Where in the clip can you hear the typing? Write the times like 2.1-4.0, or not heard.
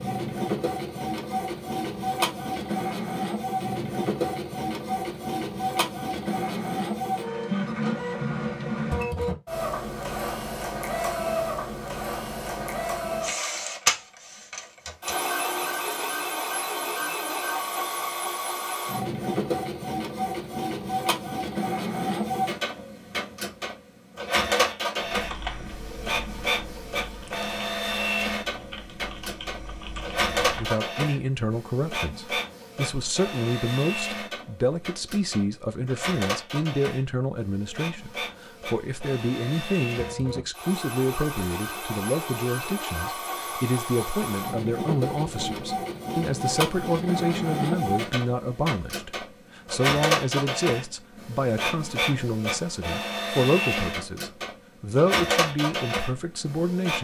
25.1-30.8.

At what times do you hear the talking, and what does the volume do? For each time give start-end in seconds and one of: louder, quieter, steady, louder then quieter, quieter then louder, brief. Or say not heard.
30.4-56.9 steady.